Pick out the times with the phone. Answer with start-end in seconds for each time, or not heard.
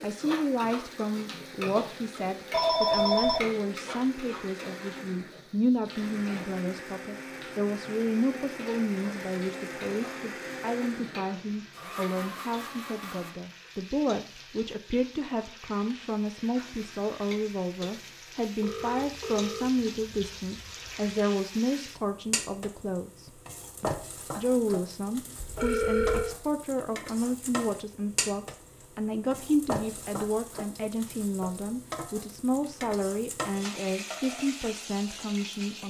2.5-3.5, 18.6-21.1, 25.4-26.4.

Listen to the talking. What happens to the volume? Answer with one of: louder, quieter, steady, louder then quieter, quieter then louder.
steady.